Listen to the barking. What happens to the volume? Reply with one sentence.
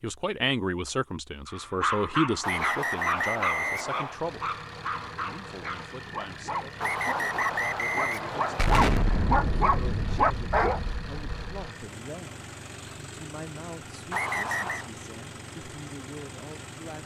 The volume of the barking goes down, then up.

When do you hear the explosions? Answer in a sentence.
You can hear the explosions from 8.6 to 11.7 s.